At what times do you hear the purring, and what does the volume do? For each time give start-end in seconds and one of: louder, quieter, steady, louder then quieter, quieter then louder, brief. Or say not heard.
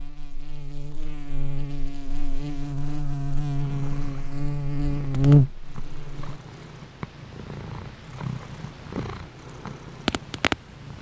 3.5-10.9 louder.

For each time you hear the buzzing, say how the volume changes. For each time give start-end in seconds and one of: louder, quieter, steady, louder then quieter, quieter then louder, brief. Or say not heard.
0.0-6.4 louder.